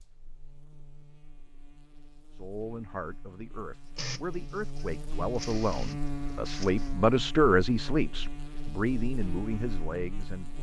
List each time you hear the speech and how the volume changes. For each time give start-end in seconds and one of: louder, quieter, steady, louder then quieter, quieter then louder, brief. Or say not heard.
2.4-10.5 louder then quieter.